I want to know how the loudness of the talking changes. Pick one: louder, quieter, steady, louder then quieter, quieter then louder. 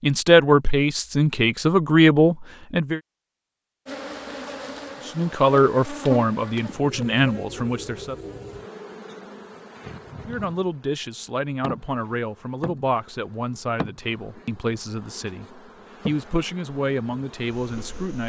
quieter.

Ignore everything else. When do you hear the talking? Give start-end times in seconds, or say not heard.
0.0-3.0, 5.0-8.2, 10.2-18.2.